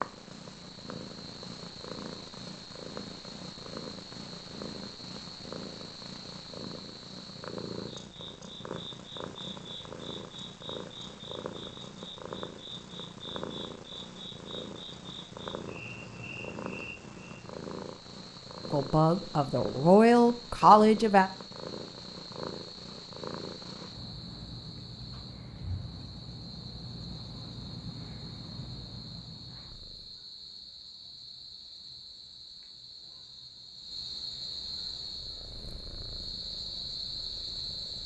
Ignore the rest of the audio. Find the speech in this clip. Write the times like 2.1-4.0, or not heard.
18.7-21.3.